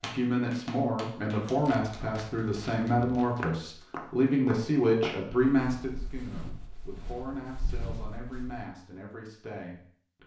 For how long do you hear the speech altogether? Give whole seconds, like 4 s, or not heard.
10 s.